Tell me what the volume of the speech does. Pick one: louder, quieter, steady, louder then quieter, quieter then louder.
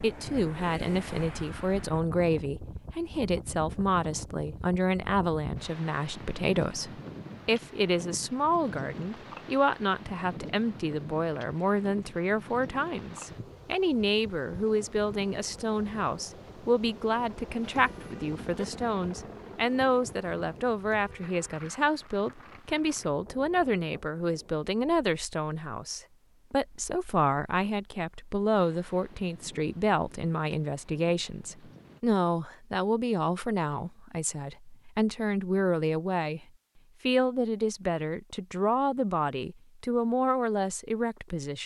steady.